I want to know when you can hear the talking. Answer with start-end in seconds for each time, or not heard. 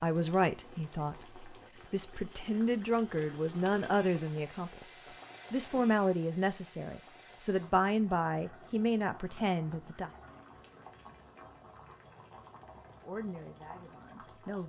0.0-10.1, 13.1-14.6.